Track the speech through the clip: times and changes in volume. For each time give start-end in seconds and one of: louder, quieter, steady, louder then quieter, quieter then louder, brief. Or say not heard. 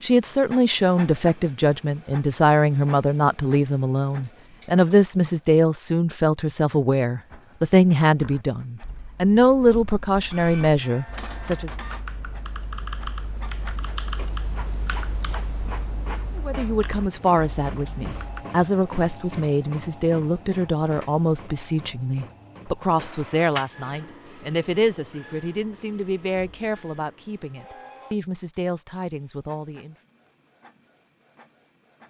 0.0-11.7 steady
16.4-29.9 quieter.